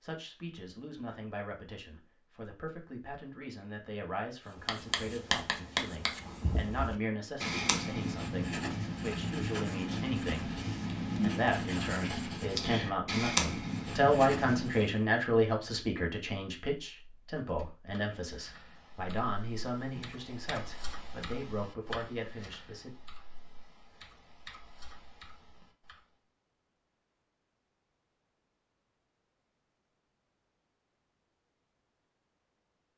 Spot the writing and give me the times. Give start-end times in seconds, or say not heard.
4.5-15.0.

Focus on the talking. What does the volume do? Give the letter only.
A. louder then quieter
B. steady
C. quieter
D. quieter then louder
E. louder
A.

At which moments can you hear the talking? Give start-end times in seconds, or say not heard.
0.0-10.5, 11.2-22.9.